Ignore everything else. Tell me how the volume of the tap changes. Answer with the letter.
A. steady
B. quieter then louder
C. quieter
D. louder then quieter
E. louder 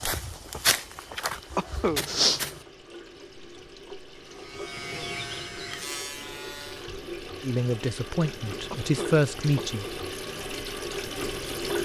E.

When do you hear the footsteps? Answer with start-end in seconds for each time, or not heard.
0.0-2.6.